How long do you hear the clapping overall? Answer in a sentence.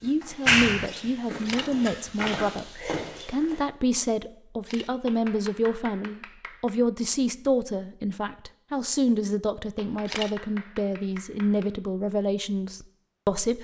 You can hear the clapping for 4 seconds altogether.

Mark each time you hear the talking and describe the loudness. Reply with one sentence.
The talking can be heard from 0.0 to 13.5 s, at a steady volume.